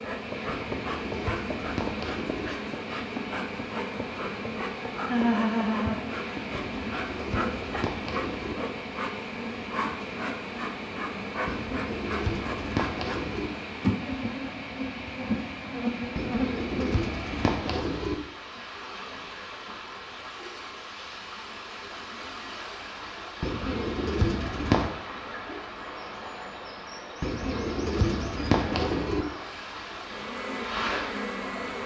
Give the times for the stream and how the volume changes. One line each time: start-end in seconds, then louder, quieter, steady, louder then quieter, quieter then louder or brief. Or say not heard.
0.0-31.8 steady.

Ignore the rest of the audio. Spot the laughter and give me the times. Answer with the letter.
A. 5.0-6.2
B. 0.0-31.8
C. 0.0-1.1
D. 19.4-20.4
A.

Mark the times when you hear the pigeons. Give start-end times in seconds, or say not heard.
0.5-2.5, 6.5-8.6, 11.4-13.5, 16.1-18.1, 23.4-24.9, 27.2-29.2.